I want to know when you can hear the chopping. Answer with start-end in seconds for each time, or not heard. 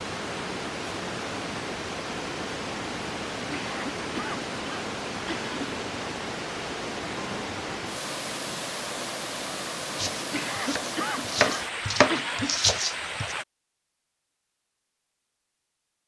9.9-13.3.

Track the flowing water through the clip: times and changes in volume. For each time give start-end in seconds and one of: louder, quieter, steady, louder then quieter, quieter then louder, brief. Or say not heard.
0.0-13.4 steady.